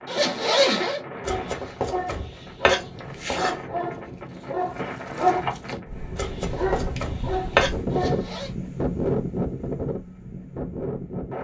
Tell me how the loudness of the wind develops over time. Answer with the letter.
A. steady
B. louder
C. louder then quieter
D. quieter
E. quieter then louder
B.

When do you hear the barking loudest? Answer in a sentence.
The volume of the barking peaks at 5 seconds.